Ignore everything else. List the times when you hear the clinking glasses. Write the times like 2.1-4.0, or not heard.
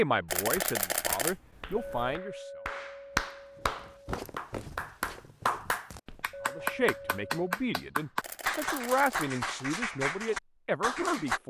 1.8-4.1, 6.3-7.3.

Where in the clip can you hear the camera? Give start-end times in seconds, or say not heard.
0.2-2.1, 8.2-9.3.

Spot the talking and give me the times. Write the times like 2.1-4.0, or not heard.
0.0-2.5, 6.5-11.4.